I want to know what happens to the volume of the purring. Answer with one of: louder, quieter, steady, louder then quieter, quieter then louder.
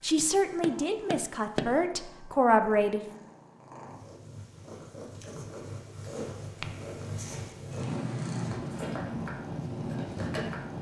louder.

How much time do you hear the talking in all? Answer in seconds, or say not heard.
3 s.